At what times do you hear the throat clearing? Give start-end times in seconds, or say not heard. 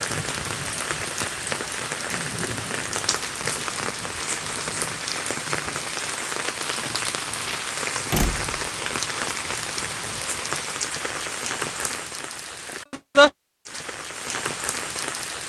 1.9-2.4.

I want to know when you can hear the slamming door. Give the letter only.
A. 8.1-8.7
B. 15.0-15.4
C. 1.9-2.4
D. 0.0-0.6
A.